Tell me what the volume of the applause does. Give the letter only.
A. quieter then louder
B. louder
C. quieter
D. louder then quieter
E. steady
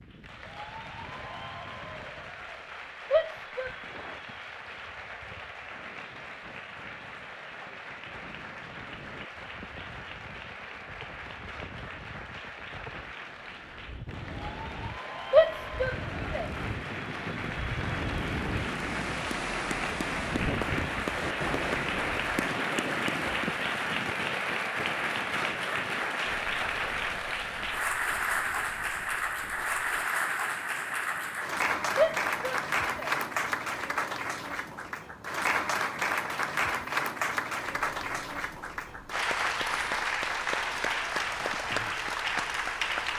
B.